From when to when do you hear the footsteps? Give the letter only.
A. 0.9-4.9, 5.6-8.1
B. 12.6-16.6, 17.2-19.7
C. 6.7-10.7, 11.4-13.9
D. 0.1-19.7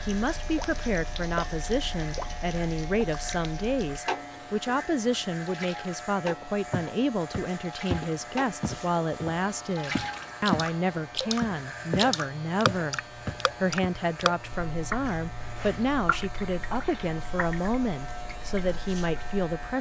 C.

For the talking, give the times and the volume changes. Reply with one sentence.
The talking can be heard from 0.1 to 19.7 s, at a steady volume.